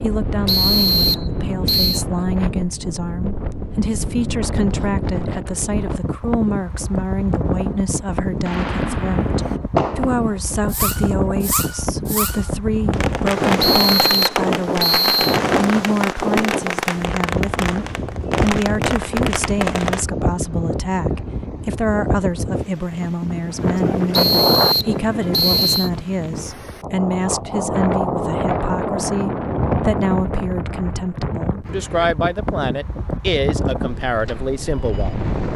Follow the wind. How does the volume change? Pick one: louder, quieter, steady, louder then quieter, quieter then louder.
steady.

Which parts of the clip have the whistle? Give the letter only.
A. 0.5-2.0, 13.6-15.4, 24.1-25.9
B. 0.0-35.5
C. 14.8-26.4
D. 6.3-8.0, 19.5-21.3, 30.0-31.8
A.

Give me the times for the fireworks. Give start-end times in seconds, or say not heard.
8.4-20.1.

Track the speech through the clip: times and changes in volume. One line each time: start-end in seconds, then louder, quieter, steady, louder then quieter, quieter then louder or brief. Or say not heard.
0.0-35.5 steady.